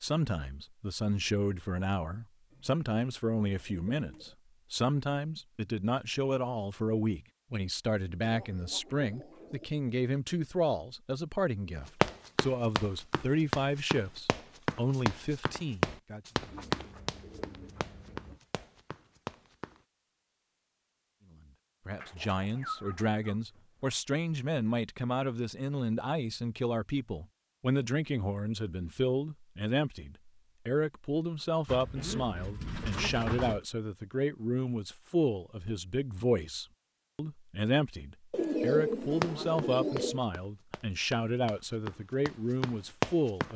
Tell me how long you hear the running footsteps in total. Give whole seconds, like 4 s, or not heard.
12 s.